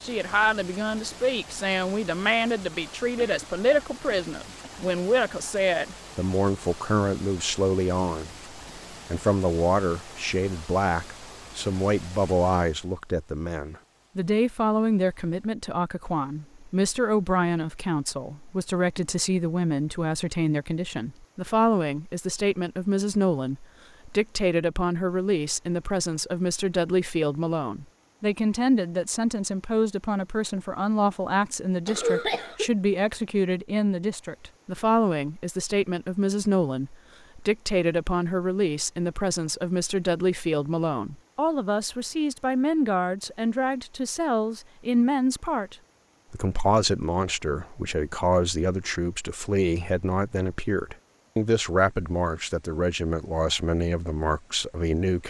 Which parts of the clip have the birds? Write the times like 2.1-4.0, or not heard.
not heard.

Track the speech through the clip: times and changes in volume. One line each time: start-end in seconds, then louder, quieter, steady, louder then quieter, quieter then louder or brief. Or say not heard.
0.0-8.3 steady
9.1-55.2 steady.